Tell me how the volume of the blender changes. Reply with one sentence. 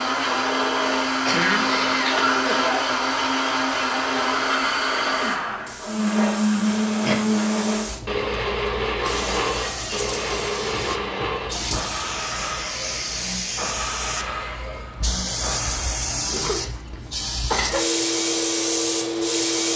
The loudness of the blender goes down.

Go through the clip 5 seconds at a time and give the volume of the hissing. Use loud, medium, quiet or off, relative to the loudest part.
medium, medium, medium, loud.